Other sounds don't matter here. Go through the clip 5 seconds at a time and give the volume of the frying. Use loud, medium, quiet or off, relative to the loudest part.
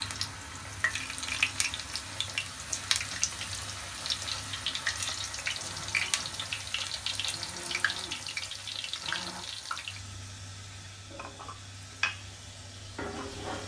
loud, loud, medium.